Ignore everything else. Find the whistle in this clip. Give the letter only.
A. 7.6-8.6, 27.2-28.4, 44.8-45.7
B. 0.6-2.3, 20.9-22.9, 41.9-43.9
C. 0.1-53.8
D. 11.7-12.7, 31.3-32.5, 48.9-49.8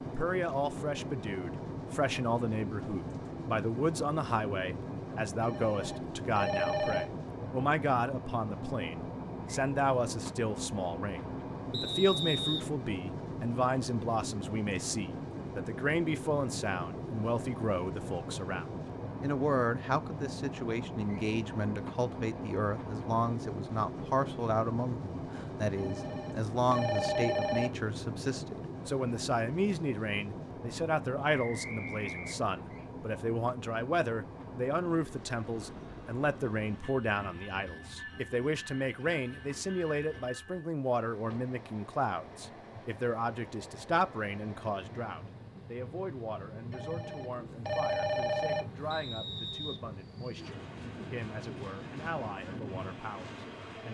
D.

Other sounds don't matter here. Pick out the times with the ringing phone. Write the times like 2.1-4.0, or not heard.
5.4-7.1, 25.8-27.7, 46.7-48.6.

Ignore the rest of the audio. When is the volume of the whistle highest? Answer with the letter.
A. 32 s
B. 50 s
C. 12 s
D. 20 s
C.